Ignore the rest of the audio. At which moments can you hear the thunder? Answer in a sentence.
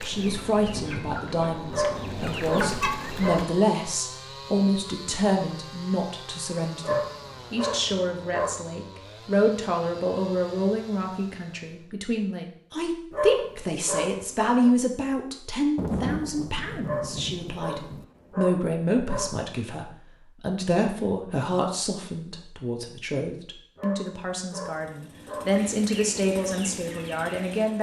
You can hear the thunder from 0.1 to 3.4 s and from 15.8 to 18.1 s.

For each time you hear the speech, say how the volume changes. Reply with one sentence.
The speech can be heard from 0.0 to 27.7 s, at a steady volume.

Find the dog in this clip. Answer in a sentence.
You can hear the dog from 1.7 to 3.6 s, from 6.8 to 8.7 s, from 13.1 to 14.7 s, from 16.8 to 19.4 s and from 23.8 to 25.6 s.